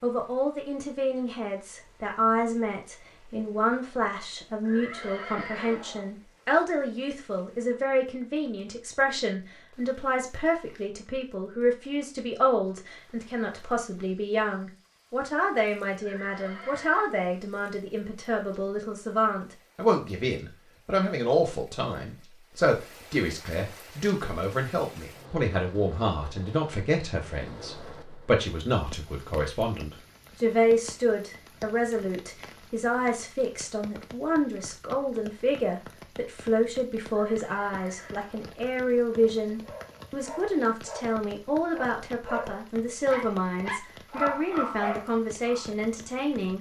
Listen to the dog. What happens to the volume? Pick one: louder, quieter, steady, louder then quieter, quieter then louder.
louder.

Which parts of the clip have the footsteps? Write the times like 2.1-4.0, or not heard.
not heard.